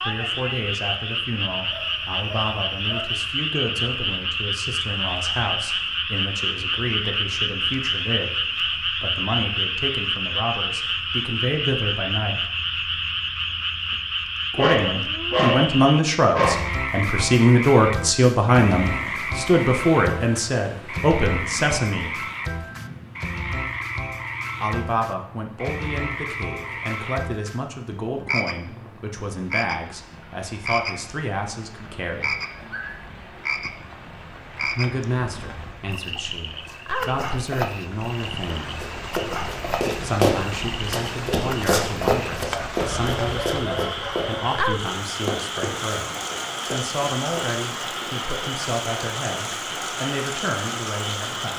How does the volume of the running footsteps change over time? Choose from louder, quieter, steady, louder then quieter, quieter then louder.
quieter.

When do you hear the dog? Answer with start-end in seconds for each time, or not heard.
1.6-3.1, 14.6-16.6, 32.5-33.1, 42.5-44.5.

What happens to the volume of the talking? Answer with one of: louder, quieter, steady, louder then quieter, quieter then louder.
louder then quieter.